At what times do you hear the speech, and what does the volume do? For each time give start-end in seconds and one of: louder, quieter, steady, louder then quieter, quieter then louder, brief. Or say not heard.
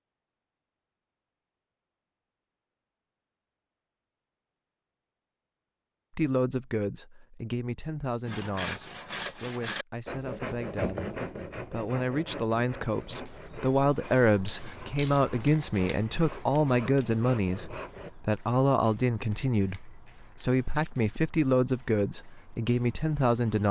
6.2-23.6 louder.